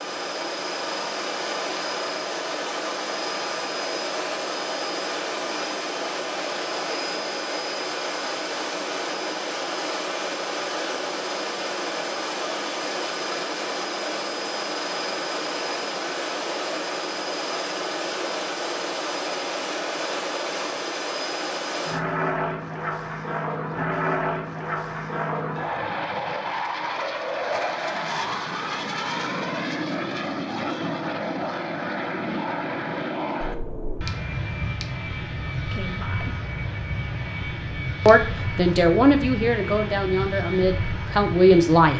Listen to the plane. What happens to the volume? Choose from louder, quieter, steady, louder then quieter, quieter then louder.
steady.